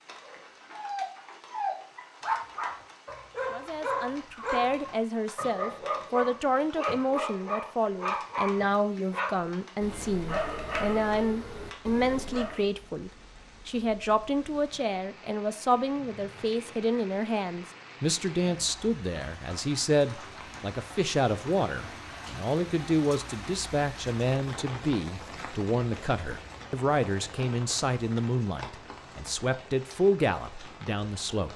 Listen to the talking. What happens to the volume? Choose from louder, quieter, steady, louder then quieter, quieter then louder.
steady.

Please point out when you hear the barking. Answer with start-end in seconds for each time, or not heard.
0.2-12.7.